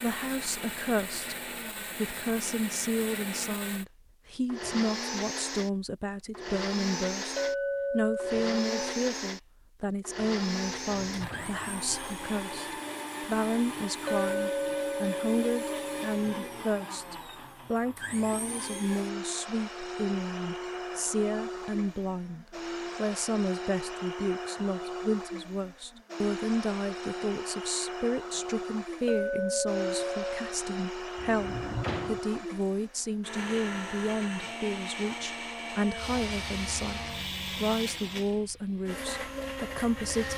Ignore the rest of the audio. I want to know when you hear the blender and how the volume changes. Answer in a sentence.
The blender can be heard from 0.0 to 40.3 s, at a steady volume.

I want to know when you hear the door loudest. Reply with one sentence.
The volume of the door peaks at 32 seconds.